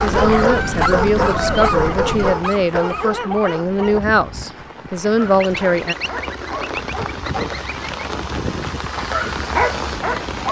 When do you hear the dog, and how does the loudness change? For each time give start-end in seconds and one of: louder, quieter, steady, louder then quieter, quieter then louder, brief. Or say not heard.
0.0-7.5 quieter
8.9-10.4 brief.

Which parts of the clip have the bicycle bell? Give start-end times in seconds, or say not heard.
not heard.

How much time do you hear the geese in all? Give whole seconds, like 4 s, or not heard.
5 s.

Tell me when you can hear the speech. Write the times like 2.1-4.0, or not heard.
0.0-6.0.